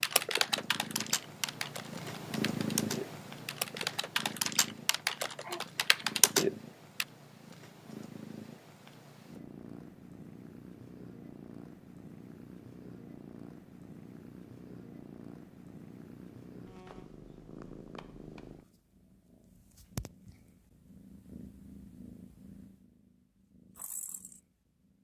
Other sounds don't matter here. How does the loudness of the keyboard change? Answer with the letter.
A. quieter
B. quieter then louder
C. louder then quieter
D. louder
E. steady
B.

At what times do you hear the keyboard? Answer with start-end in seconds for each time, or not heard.
0.0-7.0.